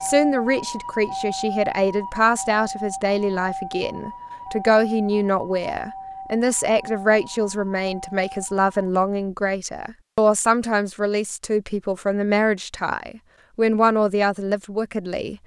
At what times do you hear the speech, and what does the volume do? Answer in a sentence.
You can hear the speech from 0.0 to 15.3 s, at a steady volume.